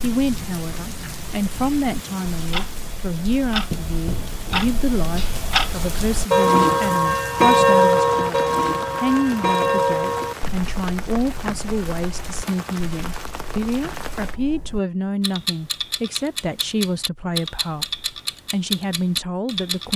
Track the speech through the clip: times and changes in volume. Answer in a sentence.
The speech can be heard from 0.0 to 19.9 s, at a steady volume.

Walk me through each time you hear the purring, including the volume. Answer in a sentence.
The purring can't be heard in this clip.